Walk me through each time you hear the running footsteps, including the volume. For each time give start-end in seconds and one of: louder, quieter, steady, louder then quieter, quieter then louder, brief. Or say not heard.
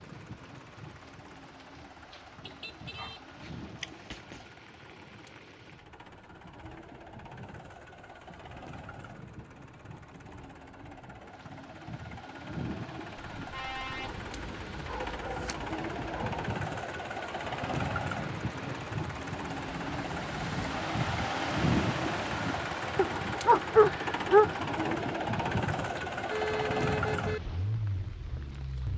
not heard.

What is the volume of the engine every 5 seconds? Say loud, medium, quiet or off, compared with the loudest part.
quiet, quiet, medium, loud, loud, loud.